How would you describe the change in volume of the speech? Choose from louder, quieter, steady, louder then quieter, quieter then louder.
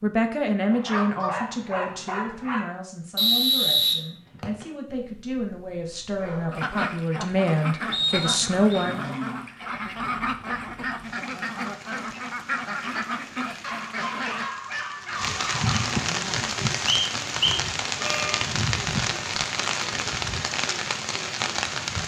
quieter then louder.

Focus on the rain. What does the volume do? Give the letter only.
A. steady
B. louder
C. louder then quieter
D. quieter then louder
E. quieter
B.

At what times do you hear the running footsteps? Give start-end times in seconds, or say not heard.
not heard.